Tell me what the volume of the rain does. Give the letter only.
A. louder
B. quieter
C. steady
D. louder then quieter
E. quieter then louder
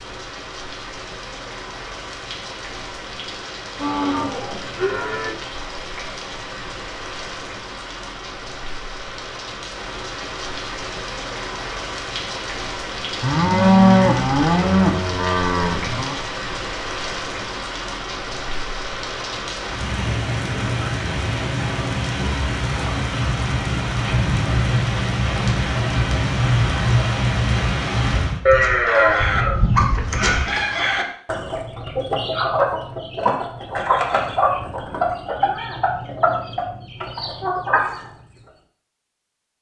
A.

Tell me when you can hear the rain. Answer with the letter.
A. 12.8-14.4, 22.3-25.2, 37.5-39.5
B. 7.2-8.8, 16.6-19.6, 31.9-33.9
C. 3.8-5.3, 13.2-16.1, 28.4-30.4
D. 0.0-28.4
D.